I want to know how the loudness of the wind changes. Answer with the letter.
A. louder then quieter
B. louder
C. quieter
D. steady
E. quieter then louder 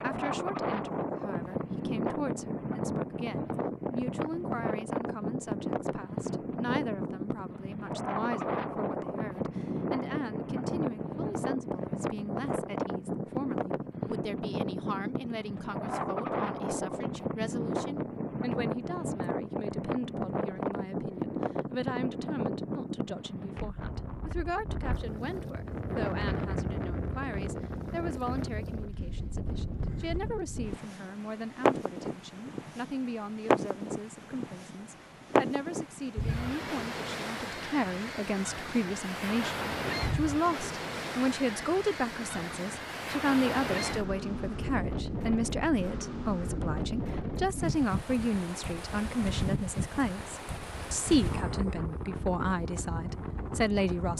D.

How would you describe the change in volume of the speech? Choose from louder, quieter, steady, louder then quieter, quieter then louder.
louder.